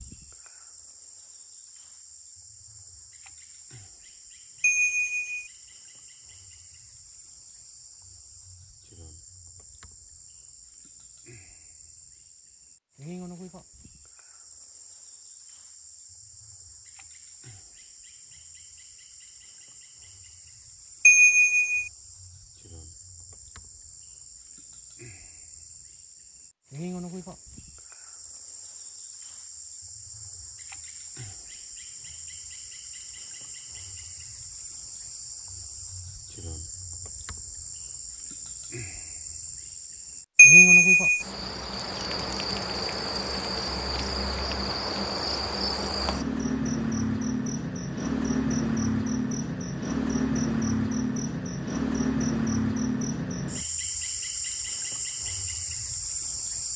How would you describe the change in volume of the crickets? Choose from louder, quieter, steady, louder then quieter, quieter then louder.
louder.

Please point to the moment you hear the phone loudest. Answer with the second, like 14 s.
41 s.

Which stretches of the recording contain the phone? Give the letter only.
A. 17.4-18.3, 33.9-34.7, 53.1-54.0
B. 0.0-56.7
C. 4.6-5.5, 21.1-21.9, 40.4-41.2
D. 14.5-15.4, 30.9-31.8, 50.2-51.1
C.